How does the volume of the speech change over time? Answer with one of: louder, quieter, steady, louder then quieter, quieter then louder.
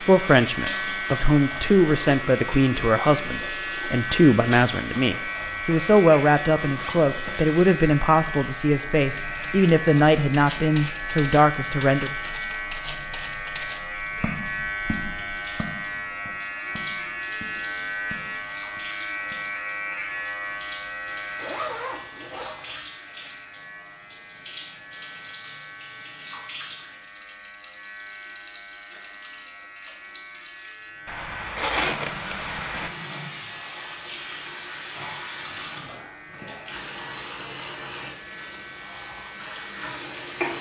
steady.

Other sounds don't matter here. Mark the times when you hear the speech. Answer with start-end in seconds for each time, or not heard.
0.1-12.1.